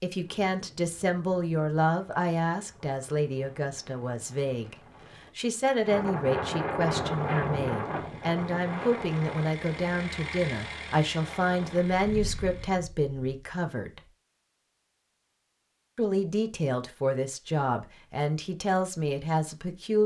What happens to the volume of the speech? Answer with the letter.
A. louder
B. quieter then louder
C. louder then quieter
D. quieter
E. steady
E.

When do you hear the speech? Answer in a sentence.
You can hear the speech from 0.0 to 4.8 s, from 5.3 to 14.0 s and from 15.9 to 20.0 s.